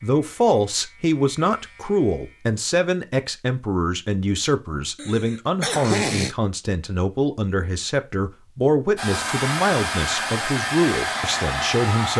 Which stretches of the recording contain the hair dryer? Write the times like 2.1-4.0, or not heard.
8.9-12.1.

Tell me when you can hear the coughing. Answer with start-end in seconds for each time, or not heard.
5.0-6.3.